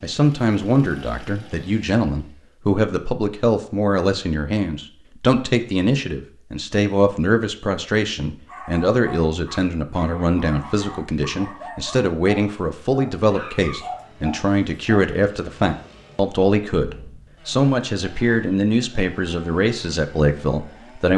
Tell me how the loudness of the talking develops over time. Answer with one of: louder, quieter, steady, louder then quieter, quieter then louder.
steady.